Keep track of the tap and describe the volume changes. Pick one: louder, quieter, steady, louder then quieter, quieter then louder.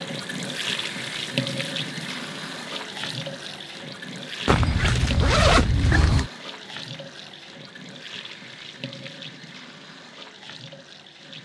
quieter.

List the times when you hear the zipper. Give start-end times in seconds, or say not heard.
4.5-6.3.